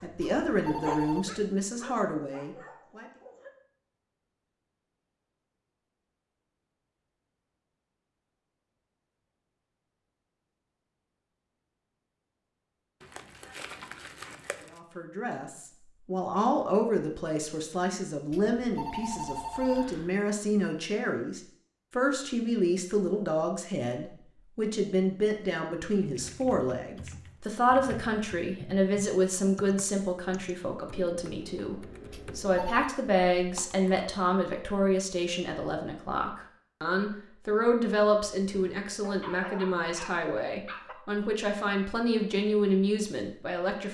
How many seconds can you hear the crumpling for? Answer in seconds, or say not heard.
2 s.